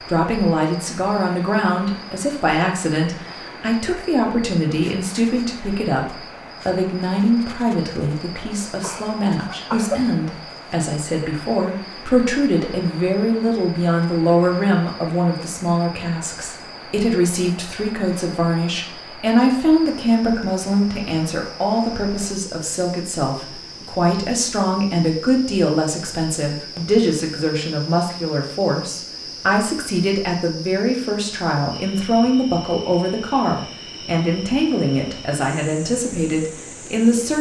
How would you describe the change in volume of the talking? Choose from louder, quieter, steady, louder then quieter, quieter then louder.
steady.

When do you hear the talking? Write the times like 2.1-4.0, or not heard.
0.0-37.3.